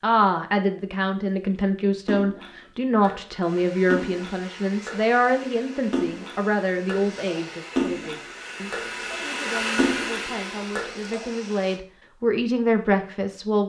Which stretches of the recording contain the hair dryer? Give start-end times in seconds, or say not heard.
3.4-11.8.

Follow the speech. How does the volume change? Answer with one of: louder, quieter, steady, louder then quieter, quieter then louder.
quieter then louder.